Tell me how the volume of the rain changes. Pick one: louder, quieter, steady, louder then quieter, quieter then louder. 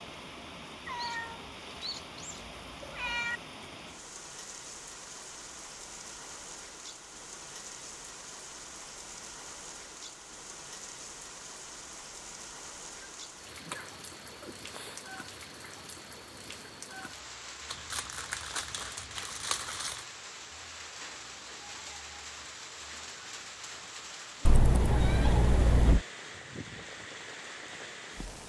steady.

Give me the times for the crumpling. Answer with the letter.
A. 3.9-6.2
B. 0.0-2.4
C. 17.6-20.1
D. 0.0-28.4
C.